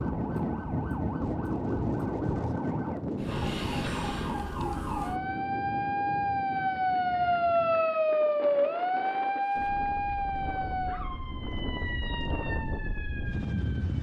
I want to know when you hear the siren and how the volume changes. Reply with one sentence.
You can hear the siren from 0.0 to 13.9 s, getting louder then quieter.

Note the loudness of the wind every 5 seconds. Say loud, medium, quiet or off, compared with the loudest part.
loud, medium, medium.